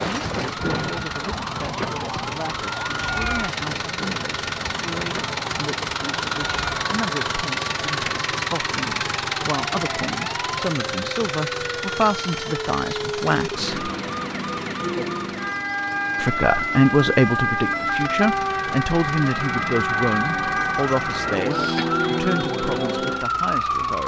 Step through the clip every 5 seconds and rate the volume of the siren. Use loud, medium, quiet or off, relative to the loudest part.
medium, medium, medium, loud, loud.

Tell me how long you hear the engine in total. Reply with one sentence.
The engine can be heard for 24 seconds in total.